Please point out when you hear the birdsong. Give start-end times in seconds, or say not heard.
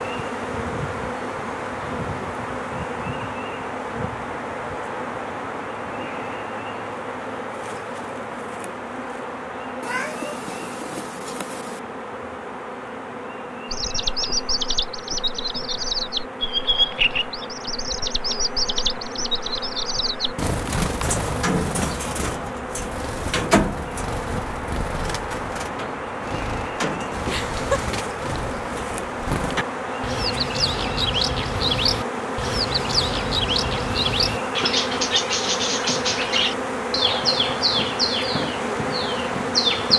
13.7-39.9.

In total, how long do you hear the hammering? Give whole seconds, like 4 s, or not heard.
not heard.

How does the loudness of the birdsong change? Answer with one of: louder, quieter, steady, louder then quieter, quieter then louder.
quieter then louder.